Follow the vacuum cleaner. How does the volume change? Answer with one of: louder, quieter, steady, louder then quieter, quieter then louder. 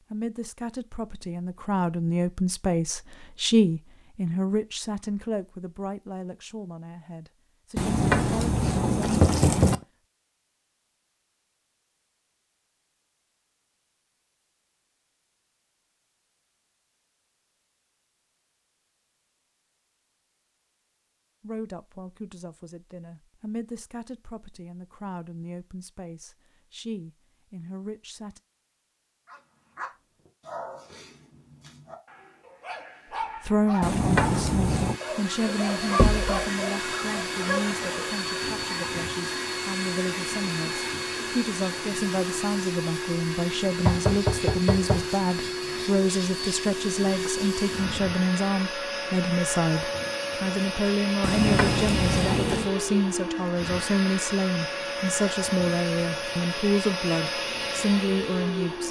steady.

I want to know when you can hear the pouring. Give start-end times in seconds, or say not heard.
7.8-9.8, 33.8-35.0, 51.2-52.7.